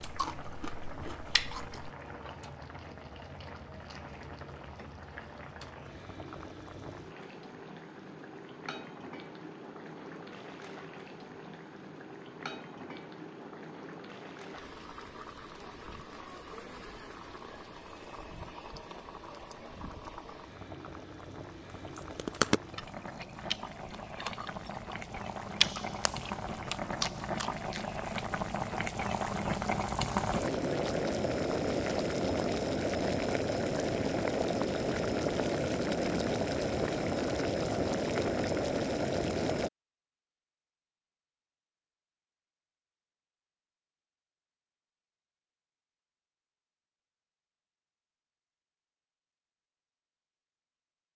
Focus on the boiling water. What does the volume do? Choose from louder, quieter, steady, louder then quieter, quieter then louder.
louder.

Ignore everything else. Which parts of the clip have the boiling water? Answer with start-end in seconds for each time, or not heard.
0.0-39.7.